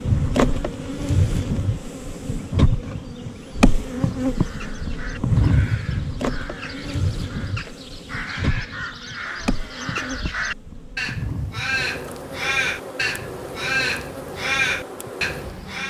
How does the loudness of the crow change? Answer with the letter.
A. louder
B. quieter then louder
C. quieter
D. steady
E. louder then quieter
A.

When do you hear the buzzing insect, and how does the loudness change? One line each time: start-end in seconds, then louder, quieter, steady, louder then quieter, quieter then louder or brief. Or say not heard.
0.0-15.8 quieter.